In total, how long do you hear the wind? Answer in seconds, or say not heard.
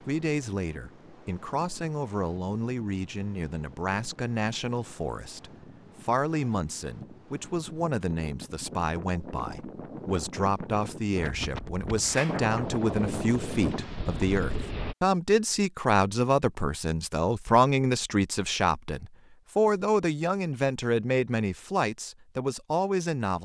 15 s.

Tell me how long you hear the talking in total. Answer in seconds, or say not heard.
23 s.